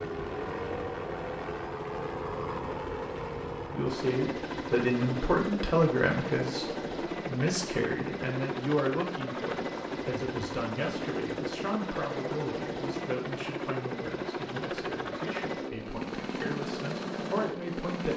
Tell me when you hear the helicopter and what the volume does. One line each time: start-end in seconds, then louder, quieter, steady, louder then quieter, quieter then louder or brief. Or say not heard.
0.0-18.1 steady.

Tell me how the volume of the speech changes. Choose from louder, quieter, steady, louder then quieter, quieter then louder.
quieter.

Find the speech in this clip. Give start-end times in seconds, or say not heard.
3.7-18.1.